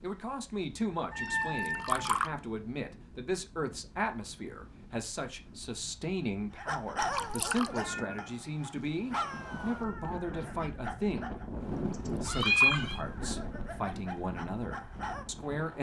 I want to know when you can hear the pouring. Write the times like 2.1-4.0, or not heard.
1.4-2.3, 7.0-7.7, 11.9-12.9.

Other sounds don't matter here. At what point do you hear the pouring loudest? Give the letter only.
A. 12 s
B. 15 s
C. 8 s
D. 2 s
D.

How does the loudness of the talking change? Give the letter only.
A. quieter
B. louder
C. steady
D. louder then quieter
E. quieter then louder
C.